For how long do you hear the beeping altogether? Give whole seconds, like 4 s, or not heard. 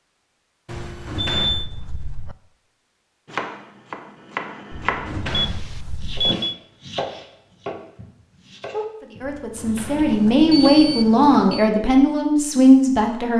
4 s.